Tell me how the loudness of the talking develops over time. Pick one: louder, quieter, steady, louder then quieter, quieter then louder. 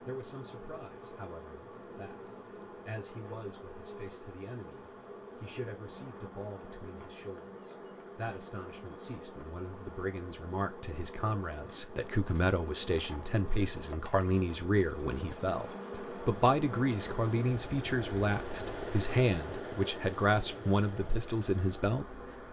louder.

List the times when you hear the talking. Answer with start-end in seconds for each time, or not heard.
0.0-22.2.